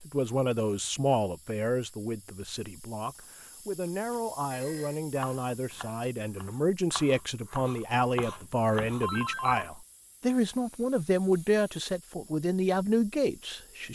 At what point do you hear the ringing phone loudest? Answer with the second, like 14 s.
9 s.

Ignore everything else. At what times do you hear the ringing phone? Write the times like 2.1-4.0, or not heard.
3.1-5.0, 9.0-9.8.